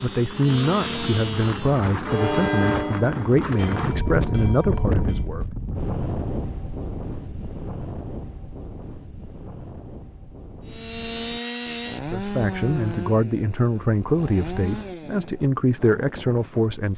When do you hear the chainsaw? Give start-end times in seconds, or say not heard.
0.0-1.9, 10.7-15.4.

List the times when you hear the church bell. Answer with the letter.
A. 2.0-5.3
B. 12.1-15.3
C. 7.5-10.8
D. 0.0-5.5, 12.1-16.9
A.